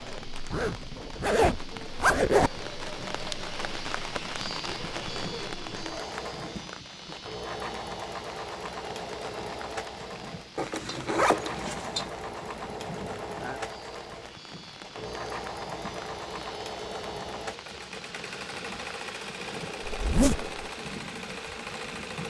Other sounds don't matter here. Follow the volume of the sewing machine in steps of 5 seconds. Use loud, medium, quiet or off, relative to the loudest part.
medium, loud, loud, loud, loud.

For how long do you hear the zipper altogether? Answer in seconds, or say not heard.
4 s.